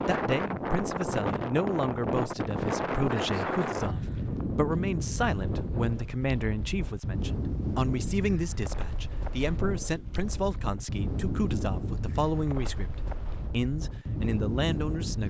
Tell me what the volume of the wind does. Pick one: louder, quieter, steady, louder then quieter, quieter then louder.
quieter.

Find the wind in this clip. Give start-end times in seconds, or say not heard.
0.0-15.2.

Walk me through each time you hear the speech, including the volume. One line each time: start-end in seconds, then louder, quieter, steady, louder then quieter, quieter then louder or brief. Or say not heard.
0.1-15.2 steady.